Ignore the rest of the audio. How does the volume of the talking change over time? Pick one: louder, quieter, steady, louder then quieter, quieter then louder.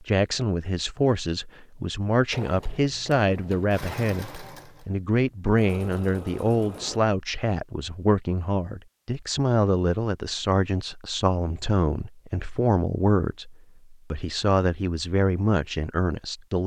steady.